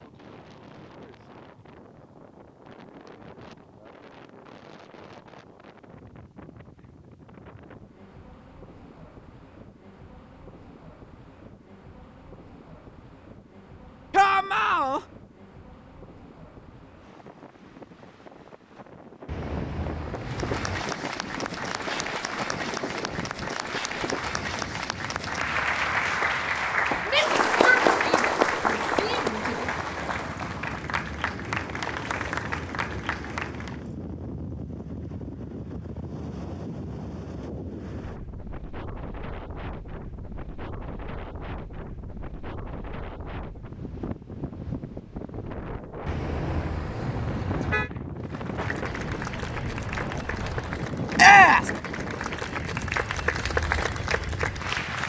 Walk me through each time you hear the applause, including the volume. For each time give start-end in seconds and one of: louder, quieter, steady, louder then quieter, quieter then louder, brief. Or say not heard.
20.1-33.9 louder then quieter
48.2-55.0 louder.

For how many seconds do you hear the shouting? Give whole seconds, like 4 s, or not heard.
4 s.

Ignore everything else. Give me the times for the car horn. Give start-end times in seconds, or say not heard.
19.2-20.9, 46.0-47.9.